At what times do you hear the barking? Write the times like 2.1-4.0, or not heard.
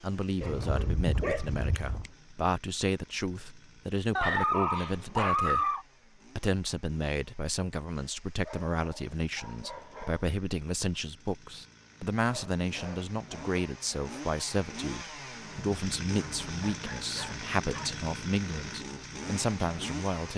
0.4-2.1, 4.2-5.8, 8.4-10.2, 12.3-14.3, 16.6-18.0.